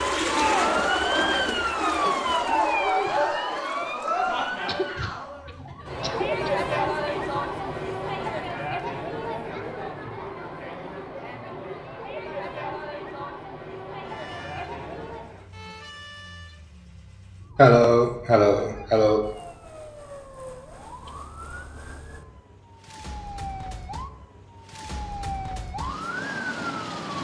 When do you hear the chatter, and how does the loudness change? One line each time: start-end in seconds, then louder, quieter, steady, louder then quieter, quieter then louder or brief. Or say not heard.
0.1-15.5 quieter.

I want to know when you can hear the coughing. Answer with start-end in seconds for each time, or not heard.
4.7-6.5, 17.6-19.2.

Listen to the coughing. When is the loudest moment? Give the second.
18 s.